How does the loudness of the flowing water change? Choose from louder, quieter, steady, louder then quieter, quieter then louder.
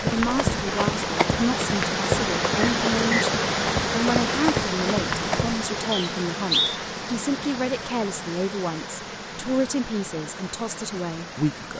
quieter.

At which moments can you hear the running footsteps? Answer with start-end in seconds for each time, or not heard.
0.0-5.7.